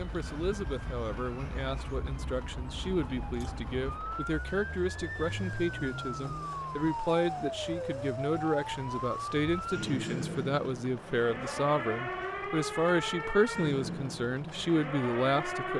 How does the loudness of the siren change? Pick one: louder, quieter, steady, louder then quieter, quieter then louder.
louder.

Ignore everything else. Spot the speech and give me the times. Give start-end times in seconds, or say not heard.
0.0-15.7.